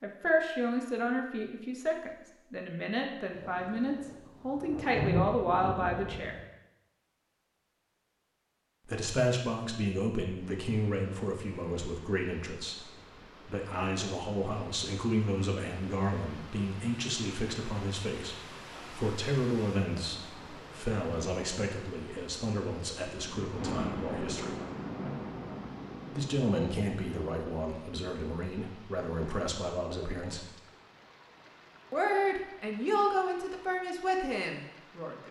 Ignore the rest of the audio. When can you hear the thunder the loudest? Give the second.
5 s.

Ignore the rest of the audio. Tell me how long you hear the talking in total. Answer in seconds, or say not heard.
30 s.